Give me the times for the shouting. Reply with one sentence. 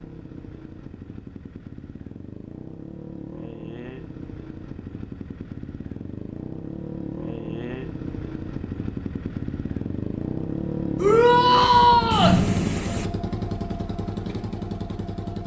The shouting can be heard from 10.9 to 12.4 s.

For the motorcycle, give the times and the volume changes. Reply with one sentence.
The motorcycle can be heard from 0.0 to 15.4 s, getting louder.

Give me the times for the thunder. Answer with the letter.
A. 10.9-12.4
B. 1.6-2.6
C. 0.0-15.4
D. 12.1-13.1
D.